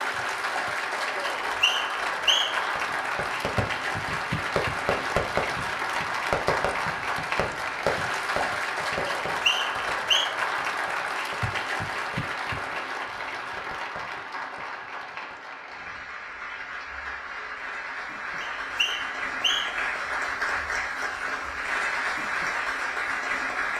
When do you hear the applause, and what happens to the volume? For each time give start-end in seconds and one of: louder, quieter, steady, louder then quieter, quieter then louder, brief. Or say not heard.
0.0-23.7 quieter then louder.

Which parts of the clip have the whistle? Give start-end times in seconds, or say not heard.
1.4-2.6, 9.1-10.3, 18.4-19.9.